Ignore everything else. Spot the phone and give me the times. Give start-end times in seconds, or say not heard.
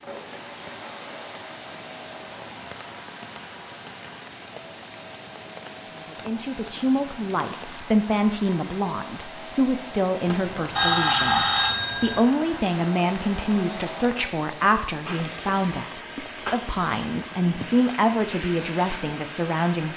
10.2-12.2.